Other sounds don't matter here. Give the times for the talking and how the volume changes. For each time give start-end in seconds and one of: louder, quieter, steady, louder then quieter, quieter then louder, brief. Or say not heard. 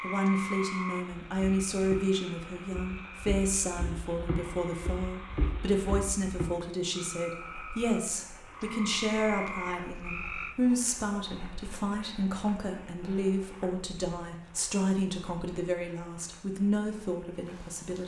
0.0-18.0 steady.